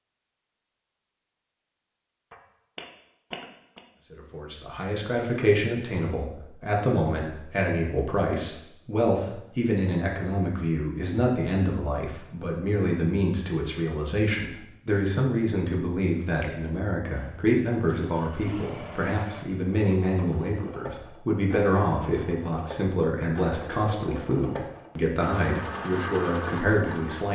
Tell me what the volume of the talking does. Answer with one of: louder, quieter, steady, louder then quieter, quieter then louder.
steady.